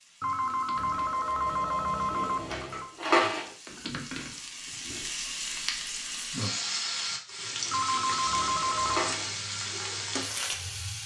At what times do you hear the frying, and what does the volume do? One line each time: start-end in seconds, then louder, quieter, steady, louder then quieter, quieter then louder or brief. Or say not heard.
0.0-11.0 louder.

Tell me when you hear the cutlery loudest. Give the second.
3 s.